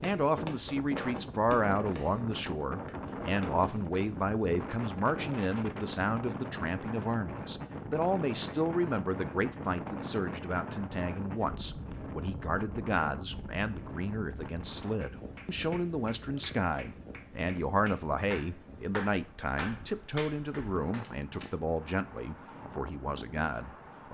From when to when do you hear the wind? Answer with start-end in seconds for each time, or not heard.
0.1-24.0.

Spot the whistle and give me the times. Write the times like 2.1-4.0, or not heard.
not heard.